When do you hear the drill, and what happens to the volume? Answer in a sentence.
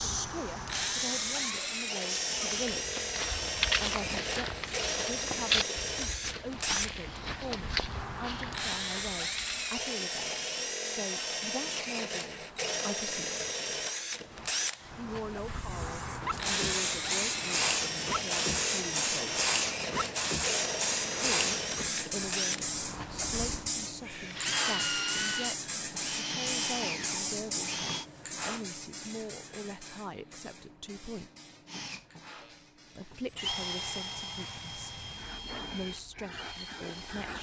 You can hear the drill from 0.0 to 28.1 s, at a steady volume; and from 31.6 to 37.3 s, getting louder then quieter.